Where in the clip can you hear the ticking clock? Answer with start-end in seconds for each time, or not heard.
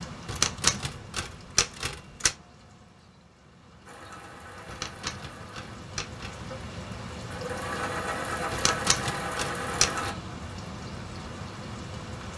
not heard.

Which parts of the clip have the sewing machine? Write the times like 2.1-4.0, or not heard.
3.9-10.2.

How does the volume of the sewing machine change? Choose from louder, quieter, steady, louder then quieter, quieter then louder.
louder.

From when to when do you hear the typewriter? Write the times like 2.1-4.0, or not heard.
0.2-2.4, 4.7-6.3, 8.5-10.1.